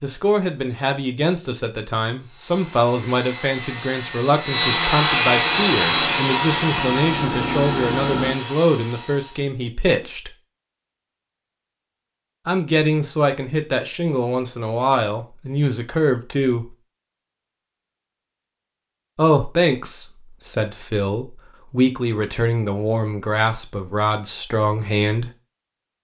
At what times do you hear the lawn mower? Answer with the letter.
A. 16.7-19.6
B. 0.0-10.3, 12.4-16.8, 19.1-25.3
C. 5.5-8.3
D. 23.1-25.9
C.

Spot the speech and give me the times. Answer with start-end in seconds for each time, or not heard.
0.0-10.3, 12.4-16.8, 19.1-25.3.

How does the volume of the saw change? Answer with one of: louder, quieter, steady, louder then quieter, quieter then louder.
louder then quieter.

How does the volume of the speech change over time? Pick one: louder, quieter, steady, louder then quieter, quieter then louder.
steady.